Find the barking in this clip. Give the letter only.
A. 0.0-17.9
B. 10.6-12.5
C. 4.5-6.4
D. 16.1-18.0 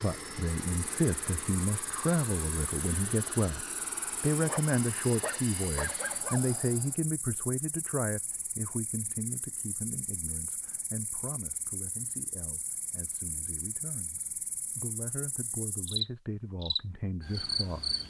C.